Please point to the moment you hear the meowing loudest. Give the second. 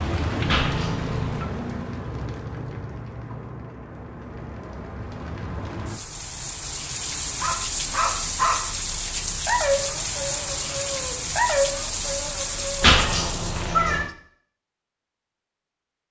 13 s.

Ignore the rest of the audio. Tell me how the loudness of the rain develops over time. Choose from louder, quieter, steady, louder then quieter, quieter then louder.
quieter then louder.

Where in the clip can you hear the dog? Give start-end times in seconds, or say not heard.
7.4-12.9.